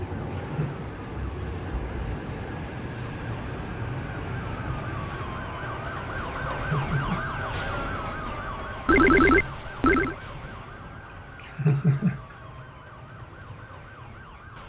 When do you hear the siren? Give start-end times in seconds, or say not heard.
0.1-14.6.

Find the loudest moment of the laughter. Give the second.
12 s.